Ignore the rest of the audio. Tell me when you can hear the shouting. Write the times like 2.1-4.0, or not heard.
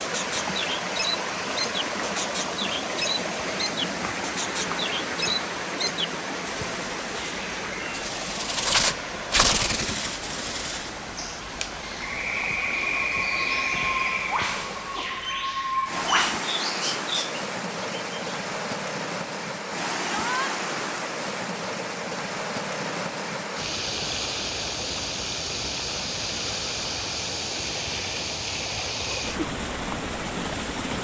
20.1-20.6.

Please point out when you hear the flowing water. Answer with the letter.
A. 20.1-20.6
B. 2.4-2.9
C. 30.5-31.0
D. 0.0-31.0
D.